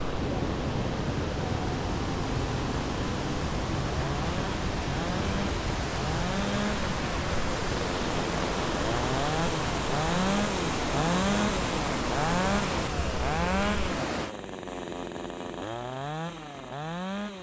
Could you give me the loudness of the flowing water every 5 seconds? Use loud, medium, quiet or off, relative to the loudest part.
loud, loud, loud, off.